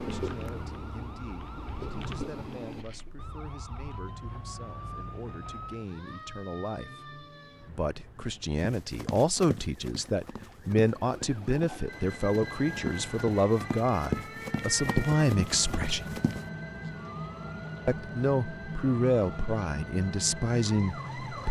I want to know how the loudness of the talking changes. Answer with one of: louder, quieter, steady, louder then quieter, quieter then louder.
louder.